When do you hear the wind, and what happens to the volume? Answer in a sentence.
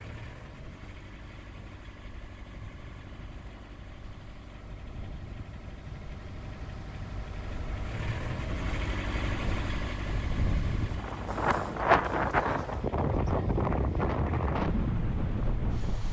The wind can be heard from 0.0 to 16.0 s, getting louder.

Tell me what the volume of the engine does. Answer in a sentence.
The loudness of the engine goes up, then down.